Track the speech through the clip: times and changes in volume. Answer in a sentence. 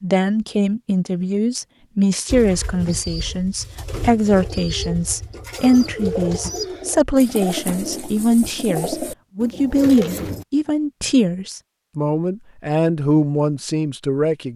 You can hear the speech from 0.0 to 14.5 s, at a steady volume.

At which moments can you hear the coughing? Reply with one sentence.
The coughing can't be heard in this clip.